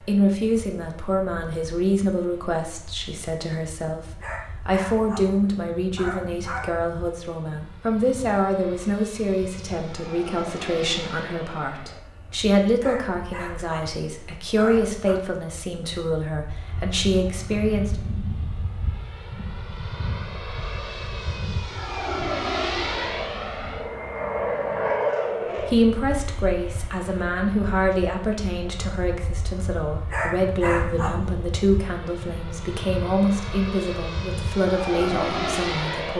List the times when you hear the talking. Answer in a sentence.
The talking can be heard from 0.1 to 18.0 s and from 25.6 to 36.1 s.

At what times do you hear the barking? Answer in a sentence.
You can hear the barking from 4.2 to 6.8 s, from 12.8 to 15.2 s and from 30.1 to 31.4 s.